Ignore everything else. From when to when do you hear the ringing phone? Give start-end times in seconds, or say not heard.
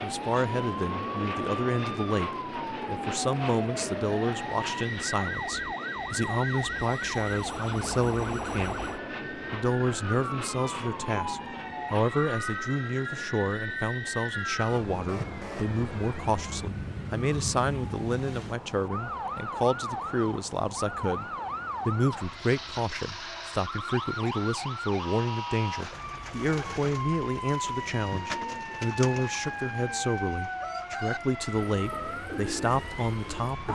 not heard.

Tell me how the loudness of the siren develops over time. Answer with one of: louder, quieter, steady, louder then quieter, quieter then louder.
steady.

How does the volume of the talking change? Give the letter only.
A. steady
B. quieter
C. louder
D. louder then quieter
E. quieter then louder
A.